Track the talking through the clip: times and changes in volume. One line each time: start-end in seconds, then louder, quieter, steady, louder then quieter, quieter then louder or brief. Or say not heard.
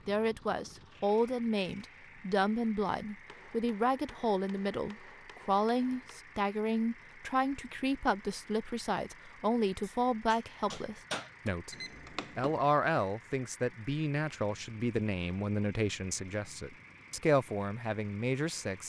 0.1-11.8 steady
12.3-18.8 quieter then louder.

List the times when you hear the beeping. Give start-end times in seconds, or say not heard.
11.7-12.7.